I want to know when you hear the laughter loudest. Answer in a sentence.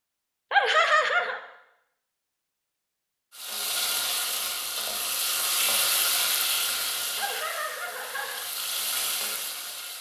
The loudest moment of the laughter is at 1 second.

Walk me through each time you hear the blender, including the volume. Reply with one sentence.
The blender can't be heard in this clip.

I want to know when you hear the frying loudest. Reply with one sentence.
The loudest moment of the frying is at 6 seconds.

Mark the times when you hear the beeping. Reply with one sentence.
You can't hear the beeping here.